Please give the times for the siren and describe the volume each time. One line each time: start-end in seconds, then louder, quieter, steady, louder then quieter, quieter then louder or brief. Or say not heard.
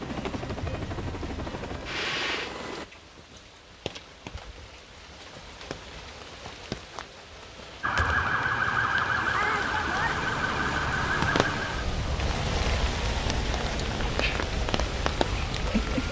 7.8-16.0 quieter.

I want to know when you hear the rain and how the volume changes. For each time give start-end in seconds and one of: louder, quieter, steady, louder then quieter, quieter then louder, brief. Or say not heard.
0.0-16.0 louder.